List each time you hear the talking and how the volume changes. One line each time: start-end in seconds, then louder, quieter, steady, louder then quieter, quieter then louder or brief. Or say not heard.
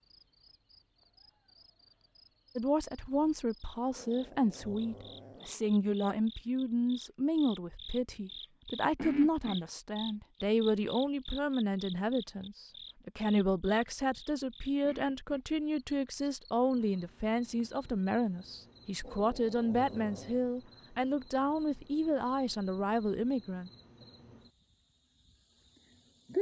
2.5-23.7 steady.